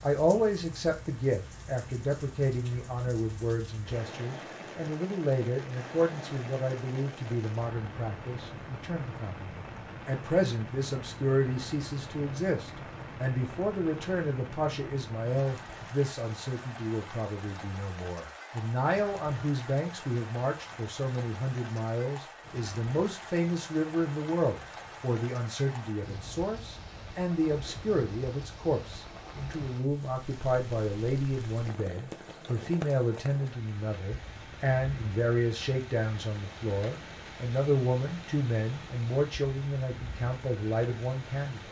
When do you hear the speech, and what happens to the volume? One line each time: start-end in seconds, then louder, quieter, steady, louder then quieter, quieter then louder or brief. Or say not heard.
0.0-41.6 steady.